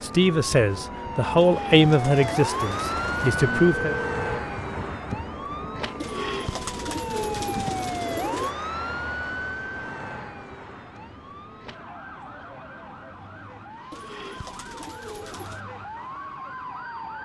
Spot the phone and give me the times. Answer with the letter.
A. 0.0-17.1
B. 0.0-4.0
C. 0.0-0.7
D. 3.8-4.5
D.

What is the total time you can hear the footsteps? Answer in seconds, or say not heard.
not heard.